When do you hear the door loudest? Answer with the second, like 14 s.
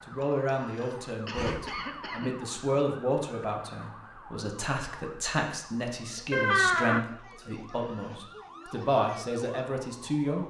7 s.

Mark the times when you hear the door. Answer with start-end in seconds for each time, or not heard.
0.8-1.8, 6.3-7.0.